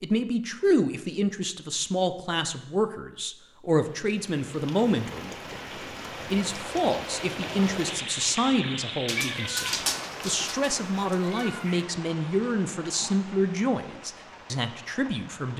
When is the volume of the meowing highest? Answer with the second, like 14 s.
10 s.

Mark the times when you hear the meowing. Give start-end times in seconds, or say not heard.
9.1-11.8.